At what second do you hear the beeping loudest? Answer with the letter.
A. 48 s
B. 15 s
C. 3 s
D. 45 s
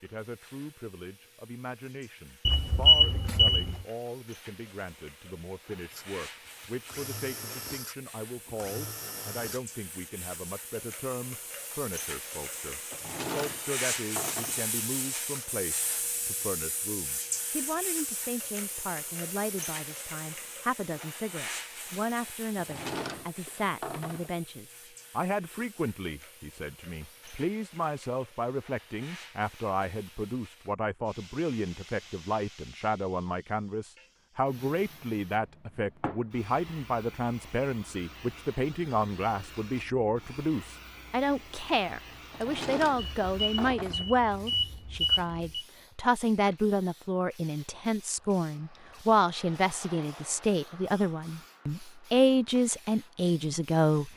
C.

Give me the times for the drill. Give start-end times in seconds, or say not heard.
5.9-9.6.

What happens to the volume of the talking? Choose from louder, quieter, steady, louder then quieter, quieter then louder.
louder.